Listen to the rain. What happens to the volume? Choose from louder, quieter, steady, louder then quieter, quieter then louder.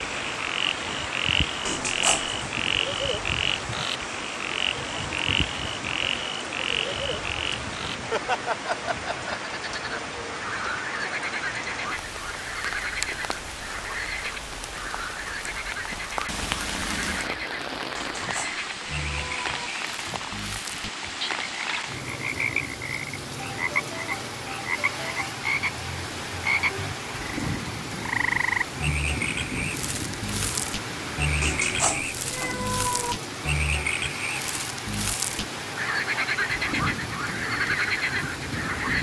steady.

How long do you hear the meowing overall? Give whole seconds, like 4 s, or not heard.
4 s.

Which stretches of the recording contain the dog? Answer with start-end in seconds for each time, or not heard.
not heard.